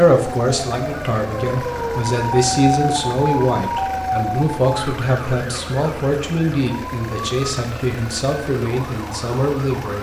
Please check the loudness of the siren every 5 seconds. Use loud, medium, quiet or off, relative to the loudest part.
loud, medium.